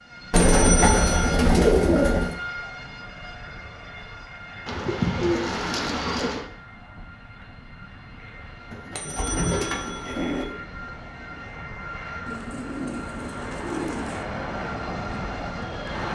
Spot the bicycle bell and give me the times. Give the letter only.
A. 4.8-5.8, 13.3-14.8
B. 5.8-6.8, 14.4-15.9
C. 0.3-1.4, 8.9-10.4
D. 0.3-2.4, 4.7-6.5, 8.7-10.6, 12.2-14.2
C.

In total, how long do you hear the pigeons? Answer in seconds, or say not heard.
8 s.